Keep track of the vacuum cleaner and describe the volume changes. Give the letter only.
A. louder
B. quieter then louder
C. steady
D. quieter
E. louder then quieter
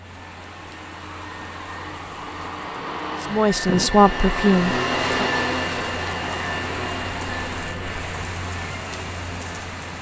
E.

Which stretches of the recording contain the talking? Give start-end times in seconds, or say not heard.
3.2-5.3.